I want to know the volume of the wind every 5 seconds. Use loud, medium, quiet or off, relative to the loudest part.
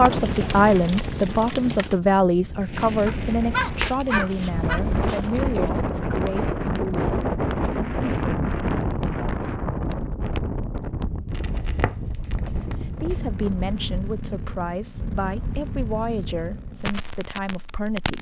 medium, loud, medium, off.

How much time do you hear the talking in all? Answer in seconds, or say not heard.
12 s.